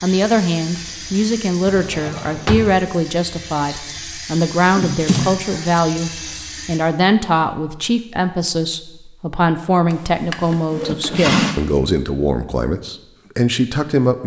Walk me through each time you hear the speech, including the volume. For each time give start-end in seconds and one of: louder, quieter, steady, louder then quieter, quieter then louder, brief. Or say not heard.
0.0-14.2 steady.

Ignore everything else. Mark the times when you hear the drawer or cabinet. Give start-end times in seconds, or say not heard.
1.6-2.8, 4.8-5.3, 9.9-11.6.